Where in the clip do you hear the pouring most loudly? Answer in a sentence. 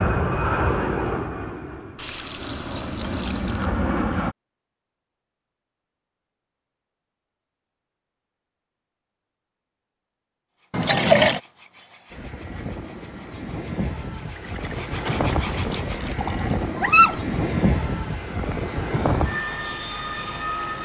The volume of the pouring peaks at 11 seconds.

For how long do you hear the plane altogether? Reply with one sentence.
You can hear the plane for 13 seconds altogether.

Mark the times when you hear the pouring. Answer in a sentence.
The pouring can be heard from 1.9 to 3.8 s, from 10.7 to 11.4 s and from 14.2 to 16.7 s.